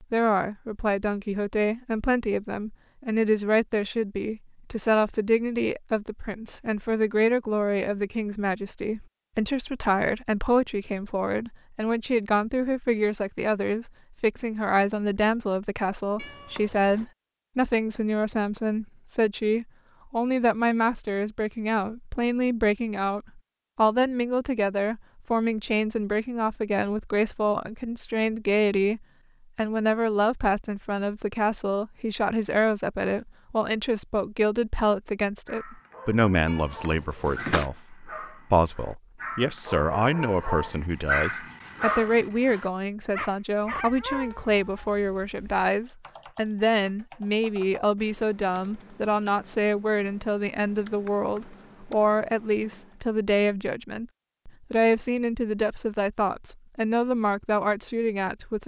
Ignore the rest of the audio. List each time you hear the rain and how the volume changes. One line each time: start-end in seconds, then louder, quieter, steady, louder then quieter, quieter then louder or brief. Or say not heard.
not heard.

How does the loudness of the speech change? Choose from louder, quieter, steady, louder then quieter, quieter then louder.
steady.